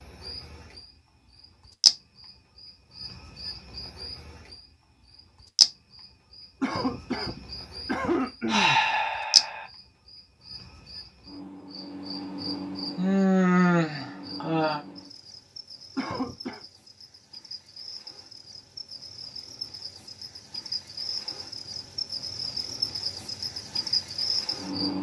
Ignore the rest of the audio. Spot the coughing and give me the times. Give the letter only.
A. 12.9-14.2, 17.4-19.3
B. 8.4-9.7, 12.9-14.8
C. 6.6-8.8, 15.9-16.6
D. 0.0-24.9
C.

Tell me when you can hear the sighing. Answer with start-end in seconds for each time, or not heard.
8.4-9.7, 12.9-14.8.